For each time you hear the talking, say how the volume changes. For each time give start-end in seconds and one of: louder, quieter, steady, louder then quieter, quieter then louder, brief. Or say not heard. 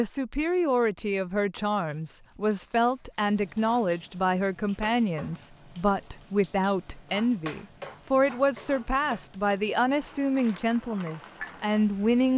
0.0-12.3 steady.